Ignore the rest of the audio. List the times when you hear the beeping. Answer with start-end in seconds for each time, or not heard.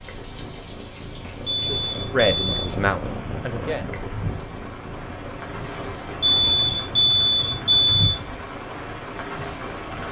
1.4-2.8, 6.2-8.2.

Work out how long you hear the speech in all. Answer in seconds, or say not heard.
2 s.